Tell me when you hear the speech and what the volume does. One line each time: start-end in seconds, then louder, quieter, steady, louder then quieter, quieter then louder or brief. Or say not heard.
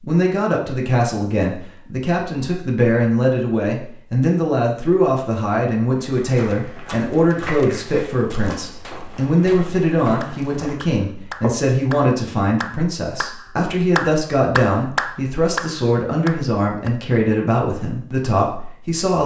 0.0-19.2 steady.